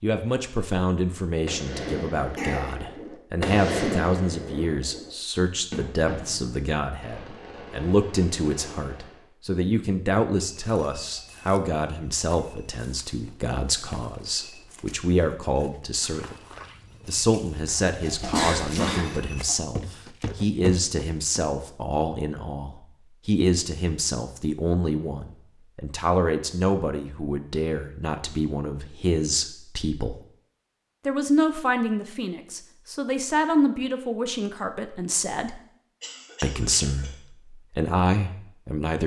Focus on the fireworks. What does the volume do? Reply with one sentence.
The volume of the fireworks goes up, then down.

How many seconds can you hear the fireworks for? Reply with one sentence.
You can hear the fireworks for 8 seconds altogether.